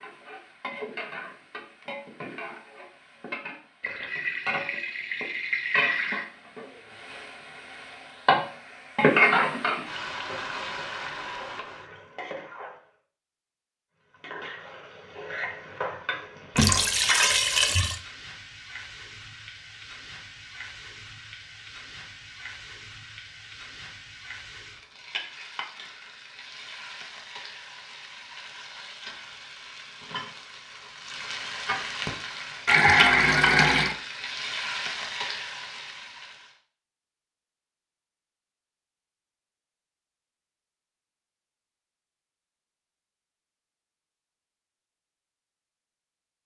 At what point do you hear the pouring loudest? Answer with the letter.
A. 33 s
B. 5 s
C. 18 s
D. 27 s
A.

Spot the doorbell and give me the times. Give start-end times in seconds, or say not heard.
not heard.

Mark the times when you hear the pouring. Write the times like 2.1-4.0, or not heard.
3.8-6.2, 16.6-18.0, 32.6-34.0.